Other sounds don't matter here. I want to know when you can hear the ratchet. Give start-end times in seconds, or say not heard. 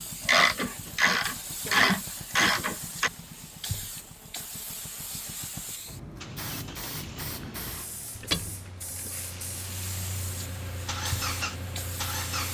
0.2-3.1, 8.2-10.0.